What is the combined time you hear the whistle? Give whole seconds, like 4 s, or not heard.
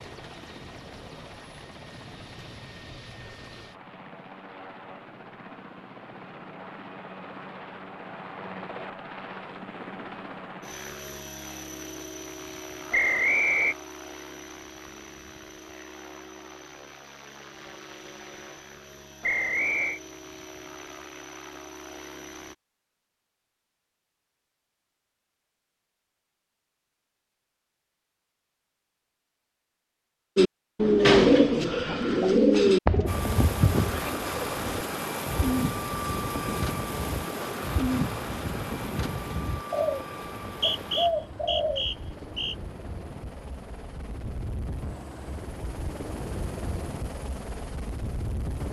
4 s.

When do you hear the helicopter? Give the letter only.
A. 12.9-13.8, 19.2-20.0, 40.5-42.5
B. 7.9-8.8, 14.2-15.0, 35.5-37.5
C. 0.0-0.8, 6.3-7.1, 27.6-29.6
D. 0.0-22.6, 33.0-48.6
D.